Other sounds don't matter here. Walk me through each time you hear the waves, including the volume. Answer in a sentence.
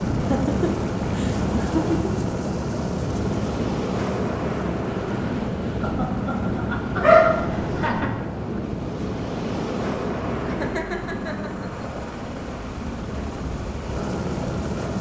The waves can be heard from 0.0 to 14.9 s, getting quieter.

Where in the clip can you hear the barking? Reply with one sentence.
The barking can be heard from 7.0 to 8.0 s.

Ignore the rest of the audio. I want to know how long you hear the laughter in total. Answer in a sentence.
You can hear the laughter for 6 seconds altogether.